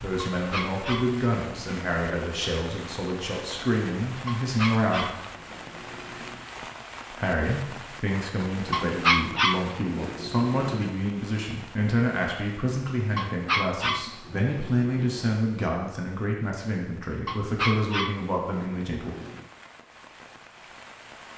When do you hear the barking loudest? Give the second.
9 s.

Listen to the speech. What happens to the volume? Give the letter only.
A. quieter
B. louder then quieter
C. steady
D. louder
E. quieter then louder
C.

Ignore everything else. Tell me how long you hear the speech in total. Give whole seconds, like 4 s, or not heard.
17 s.